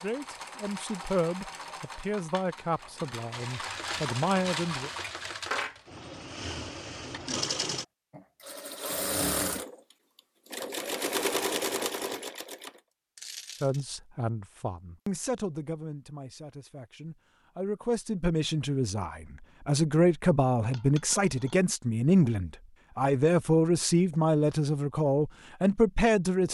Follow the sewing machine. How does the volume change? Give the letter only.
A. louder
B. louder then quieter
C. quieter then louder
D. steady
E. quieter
A.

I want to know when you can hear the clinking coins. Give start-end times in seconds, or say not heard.
3.3-5.8, 13.2-13.8, 20.7-21.6.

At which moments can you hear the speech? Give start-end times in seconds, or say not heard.
0.0-4.9, 13.6-26.4.